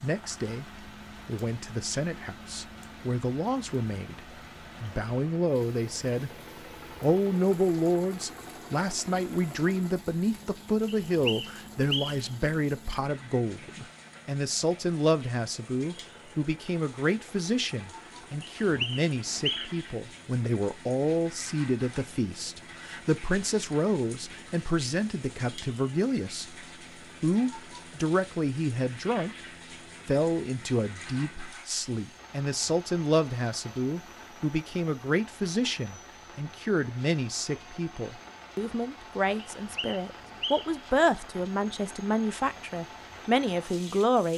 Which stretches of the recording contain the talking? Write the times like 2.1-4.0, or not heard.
0.0-6.3, 7.0-26.6, 27.2-29.3, 30.1-44.3.